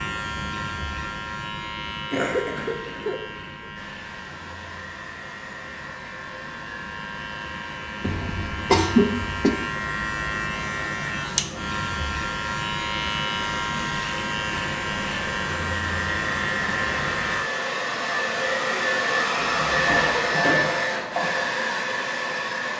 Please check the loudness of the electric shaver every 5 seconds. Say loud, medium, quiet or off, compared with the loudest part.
medium, medium, loud, loud, off.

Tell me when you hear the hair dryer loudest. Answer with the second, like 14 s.
20 s.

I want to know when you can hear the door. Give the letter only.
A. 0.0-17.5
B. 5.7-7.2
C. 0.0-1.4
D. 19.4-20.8
D.